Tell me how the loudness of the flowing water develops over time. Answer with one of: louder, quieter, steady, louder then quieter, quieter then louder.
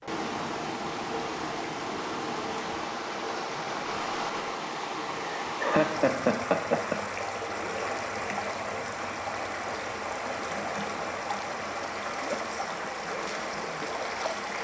steady.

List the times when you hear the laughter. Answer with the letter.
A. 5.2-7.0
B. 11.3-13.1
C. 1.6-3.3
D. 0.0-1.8
A.